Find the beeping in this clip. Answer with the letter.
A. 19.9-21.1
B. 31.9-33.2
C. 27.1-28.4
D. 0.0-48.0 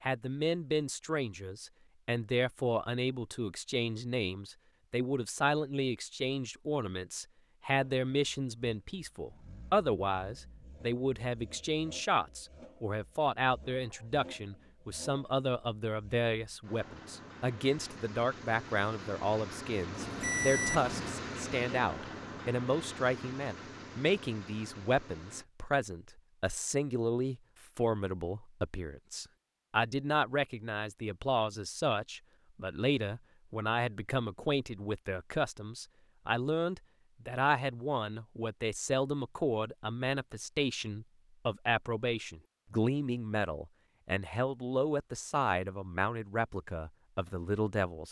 A.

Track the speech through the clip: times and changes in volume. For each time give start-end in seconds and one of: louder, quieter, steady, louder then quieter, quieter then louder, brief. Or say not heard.
0.0-48.0 steady.